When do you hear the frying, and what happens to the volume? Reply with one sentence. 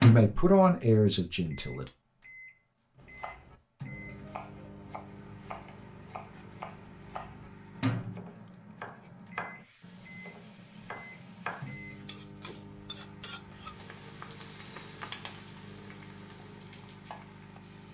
The frying can be heard from 9.6 to 17.8 s, getting louder then quieter.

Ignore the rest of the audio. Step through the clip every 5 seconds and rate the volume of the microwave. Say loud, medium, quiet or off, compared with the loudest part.
loud, medium, quiet, quiet.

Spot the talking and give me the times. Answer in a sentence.
You can hear the talking from 0.0 to 1.9 s.